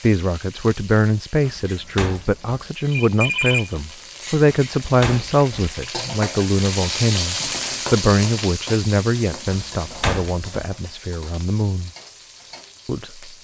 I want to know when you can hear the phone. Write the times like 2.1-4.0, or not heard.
2.9-3.8.